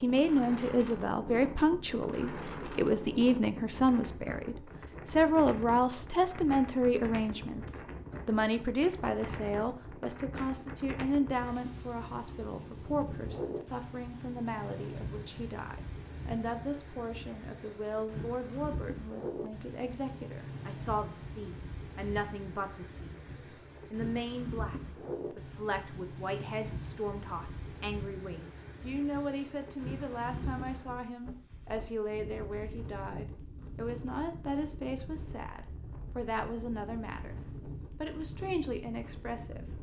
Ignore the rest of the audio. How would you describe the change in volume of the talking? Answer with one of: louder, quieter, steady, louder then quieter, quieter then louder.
quieter.